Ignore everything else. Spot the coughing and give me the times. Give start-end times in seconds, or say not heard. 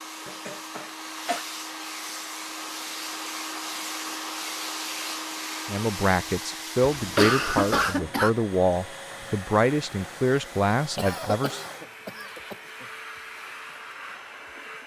0.2-1.4, 6.9-8.3, 10.9-12.8.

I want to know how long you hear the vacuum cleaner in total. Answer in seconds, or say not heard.
15 s.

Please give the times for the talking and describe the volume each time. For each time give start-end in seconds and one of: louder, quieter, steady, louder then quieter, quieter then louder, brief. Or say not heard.
5.7-11.7 steady.